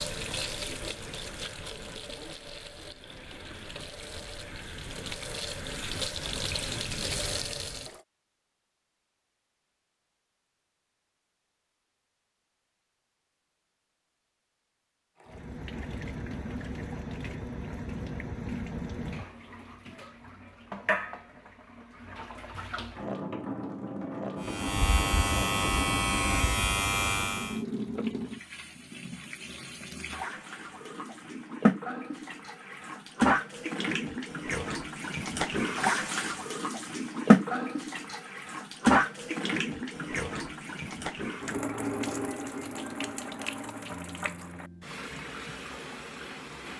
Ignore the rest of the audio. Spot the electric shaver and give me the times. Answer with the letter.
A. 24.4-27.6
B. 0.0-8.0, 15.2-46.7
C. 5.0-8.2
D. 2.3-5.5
A.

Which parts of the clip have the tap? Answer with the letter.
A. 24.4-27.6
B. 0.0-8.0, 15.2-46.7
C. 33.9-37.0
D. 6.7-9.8
B.